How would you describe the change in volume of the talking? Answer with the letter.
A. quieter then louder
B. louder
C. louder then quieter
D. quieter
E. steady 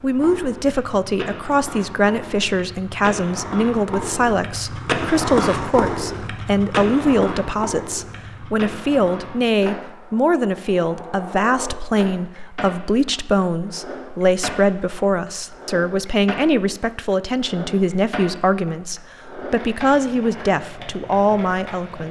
E.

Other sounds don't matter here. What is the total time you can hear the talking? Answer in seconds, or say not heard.
22 s.